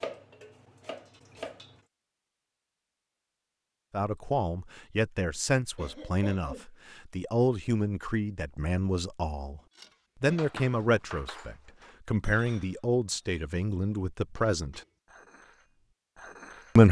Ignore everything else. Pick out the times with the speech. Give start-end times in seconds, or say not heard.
3.9-9.6, 10.2-14.8.